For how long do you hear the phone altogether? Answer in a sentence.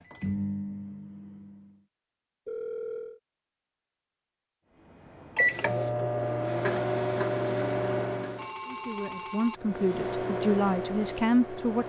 The phone can be heard for 2 seconds in total.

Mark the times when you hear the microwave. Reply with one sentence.
The microwave can be heard from 0.0 to 1.9 s, from 5.0 to 8.5 s and from 9.6 to 11.8 s.